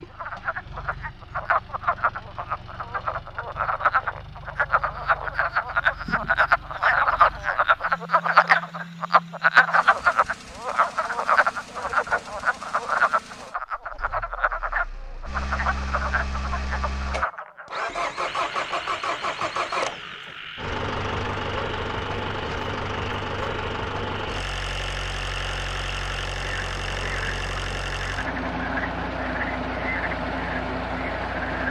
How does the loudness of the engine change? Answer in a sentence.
The volume of the engine goes up.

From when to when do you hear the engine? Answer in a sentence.
The engine can be heard from 0.0 to 31.6 s.